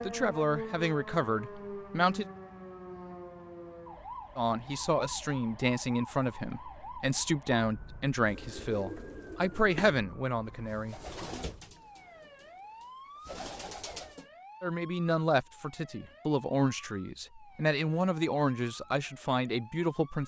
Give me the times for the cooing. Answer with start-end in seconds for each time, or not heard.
8.2-14.3.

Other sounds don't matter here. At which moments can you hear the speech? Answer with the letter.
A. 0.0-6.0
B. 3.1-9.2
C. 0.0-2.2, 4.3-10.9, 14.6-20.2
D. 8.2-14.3
C.